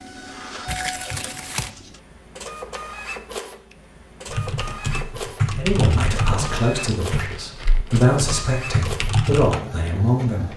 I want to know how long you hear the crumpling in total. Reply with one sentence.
The crumpling can be heard for 2 seconds in total.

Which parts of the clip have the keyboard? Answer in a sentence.
You can hear the keyboard from 4.3 to 9.6 s.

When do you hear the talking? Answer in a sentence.
The talking can be heard from 5.5 to 10.5 s.